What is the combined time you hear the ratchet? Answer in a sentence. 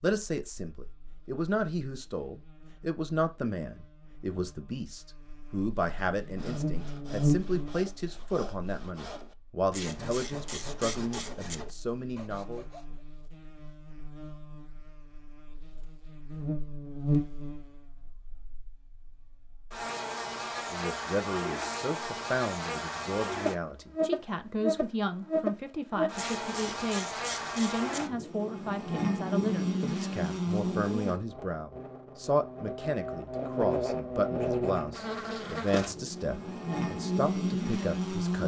The ratchet can be heard for 4 seconds in total.